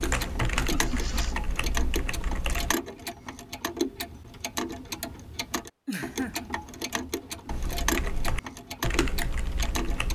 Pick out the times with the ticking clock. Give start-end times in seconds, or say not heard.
0.0-10.1.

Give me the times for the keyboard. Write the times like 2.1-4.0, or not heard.
0.0-2.8, 7.5-10.1.